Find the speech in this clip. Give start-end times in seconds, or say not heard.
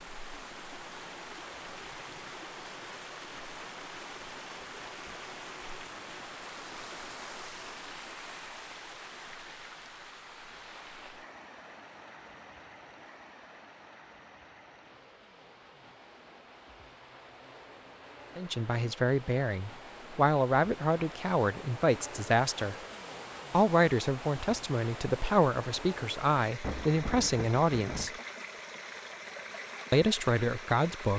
18.4-22.8, 23.5-28.1, 29.9-31.1.